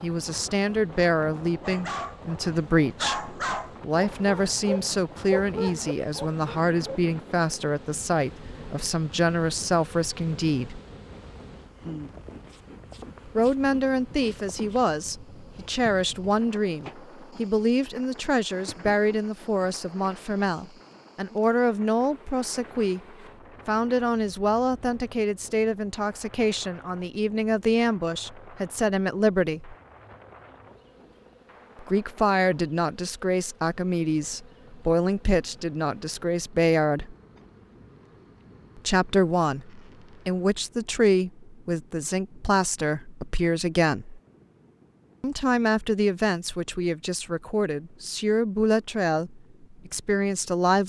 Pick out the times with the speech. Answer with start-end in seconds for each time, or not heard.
0.0-10.8, 13.2-23.0, 23.6-29.8, 31.8-37.1, 38.8-44.2, 45.2-50.8.